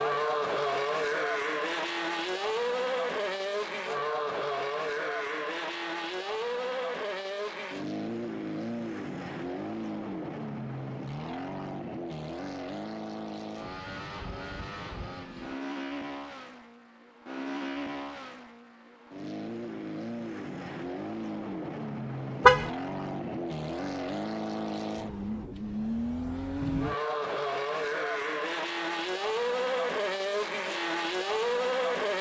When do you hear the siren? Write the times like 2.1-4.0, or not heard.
not heard.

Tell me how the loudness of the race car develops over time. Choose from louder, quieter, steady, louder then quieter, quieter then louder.
quieter then louder.